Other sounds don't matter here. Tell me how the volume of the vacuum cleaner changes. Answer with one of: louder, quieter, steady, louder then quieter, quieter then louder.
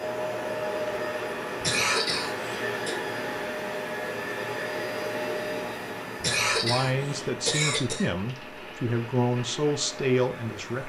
quieter.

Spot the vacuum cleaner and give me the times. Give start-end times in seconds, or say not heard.
0.0-10.8.